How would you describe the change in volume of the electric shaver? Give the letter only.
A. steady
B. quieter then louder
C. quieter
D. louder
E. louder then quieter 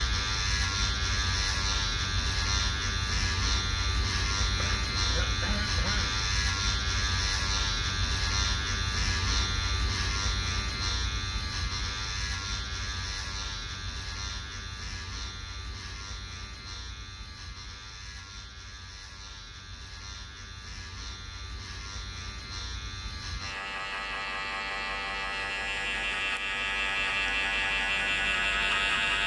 B.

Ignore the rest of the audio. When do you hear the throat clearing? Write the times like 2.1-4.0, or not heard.
4.5-6.2.